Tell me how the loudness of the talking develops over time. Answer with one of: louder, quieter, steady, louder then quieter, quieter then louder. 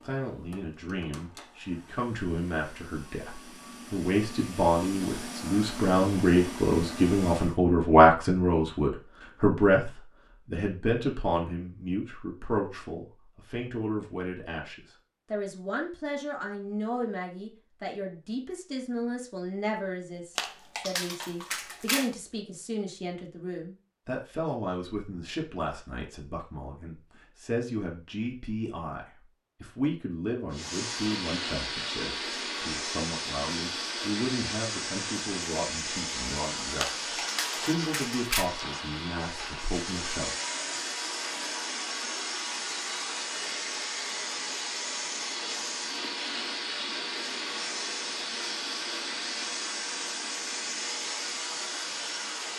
quieter.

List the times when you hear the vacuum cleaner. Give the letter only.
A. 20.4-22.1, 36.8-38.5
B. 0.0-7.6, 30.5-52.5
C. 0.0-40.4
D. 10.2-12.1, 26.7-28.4
B.